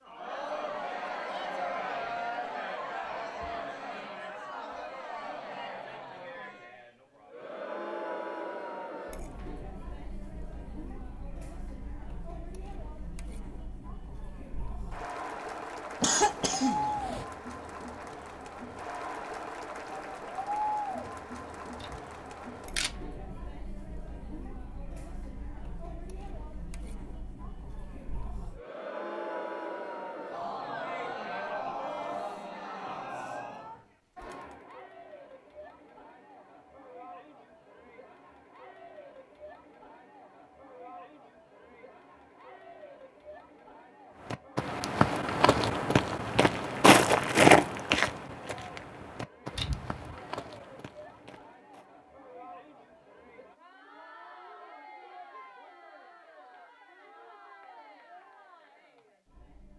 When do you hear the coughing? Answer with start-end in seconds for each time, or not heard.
16.0-17.2.